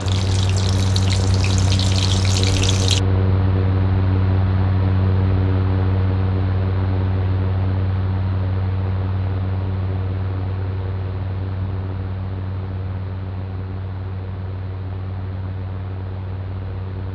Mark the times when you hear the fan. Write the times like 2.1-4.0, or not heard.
0.0-17.0.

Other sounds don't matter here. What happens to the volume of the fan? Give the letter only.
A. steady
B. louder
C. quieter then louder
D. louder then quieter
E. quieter
E.